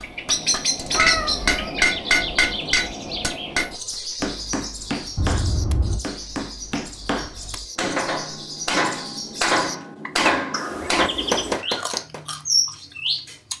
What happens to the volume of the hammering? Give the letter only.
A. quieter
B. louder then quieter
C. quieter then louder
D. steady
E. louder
C.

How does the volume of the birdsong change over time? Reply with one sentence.
The volume of the birdsong goes down, then up.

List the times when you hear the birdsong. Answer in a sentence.
You can hear the birdsong from 0.0 to 13.5 s.